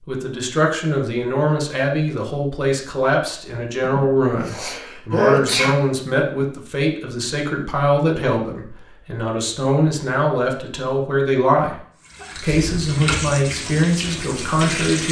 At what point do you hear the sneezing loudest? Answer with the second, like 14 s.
5 s.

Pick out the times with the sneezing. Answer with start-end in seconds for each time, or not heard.
3.8-5.8, 12.2-12.9.